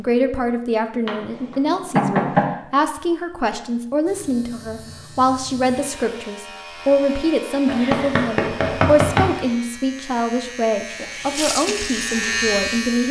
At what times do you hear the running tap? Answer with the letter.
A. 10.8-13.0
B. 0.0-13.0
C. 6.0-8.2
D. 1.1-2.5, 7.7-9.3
A.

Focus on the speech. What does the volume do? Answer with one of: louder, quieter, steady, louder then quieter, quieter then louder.
steady.